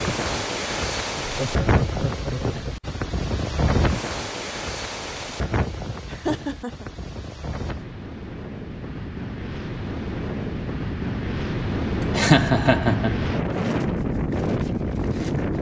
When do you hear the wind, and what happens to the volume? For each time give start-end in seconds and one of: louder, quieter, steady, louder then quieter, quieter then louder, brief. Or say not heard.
0.0-15.5 quieter then louder.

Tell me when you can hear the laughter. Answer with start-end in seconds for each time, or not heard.
1.2-2.6, 6.1-6.8, 12.2-13.2.